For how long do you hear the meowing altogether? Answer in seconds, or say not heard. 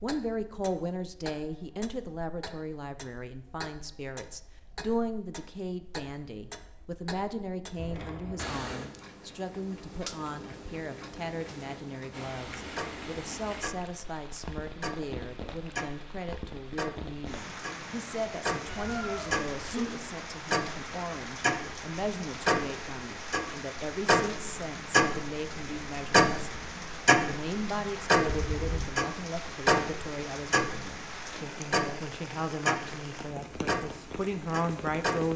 3 s.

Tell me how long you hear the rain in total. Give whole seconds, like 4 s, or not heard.
23 s.